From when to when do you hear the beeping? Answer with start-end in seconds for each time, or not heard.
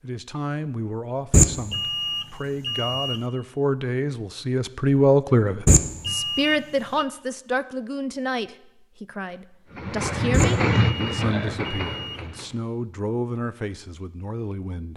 1.3-3.2, 5.7-7.0, 10.3-12.2.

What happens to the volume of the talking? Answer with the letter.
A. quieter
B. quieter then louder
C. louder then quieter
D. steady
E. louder
C.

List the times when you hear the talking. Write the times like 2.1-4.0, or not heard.
0.0-14.9.